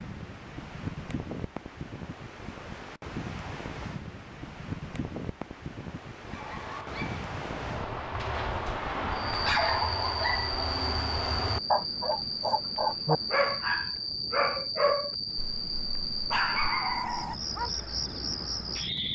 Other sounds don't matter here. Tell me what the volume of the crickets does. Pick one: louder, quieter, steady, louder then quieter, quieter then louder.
steady.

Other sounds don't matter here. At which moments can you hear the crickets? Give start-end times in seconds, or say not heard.
9.1-19.1.